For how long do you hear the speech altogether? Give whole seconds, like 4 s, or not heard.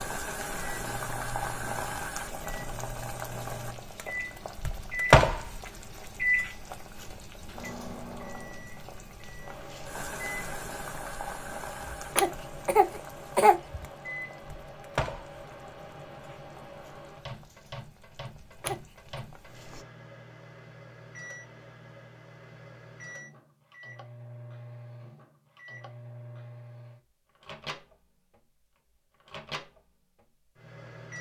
not heard.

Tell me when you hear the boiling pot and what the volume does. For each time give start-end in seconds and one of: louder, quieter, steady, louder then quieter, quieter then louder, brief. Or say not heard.
0.0-19.9 louder then quieter.